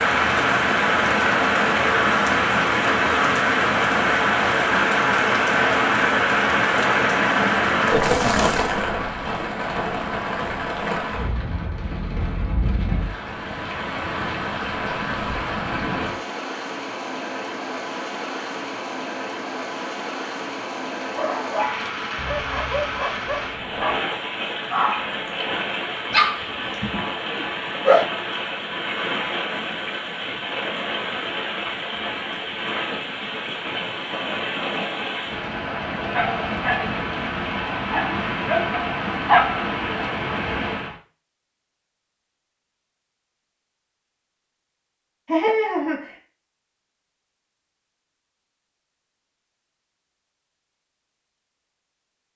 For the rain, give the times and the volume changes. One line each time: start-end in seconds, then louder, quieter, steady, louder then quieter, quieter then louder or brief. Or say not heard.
0.0-41.0 quieter.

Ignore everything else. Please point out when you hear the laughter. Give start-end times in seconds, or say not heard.
7.8-8.5, 45.2-46.1.